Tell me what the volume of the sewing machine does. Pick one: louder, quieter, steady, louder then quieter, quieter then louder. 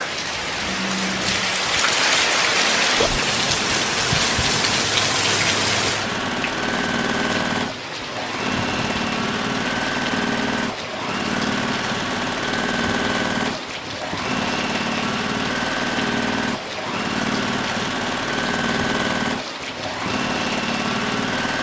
louder.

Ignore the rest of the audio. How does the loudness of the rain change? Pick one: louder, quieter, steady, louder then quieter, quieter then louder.
quieter.